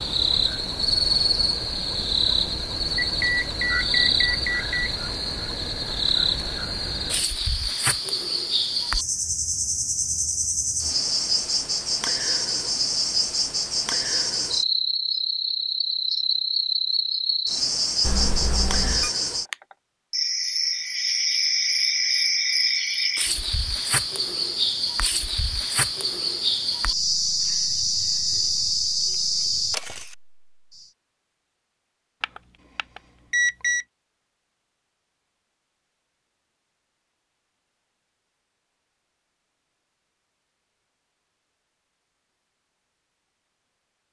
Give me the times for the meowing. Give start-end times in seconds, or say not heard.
not heard.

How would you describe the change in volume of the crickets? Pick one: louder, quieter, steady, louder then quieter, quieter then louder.
steady.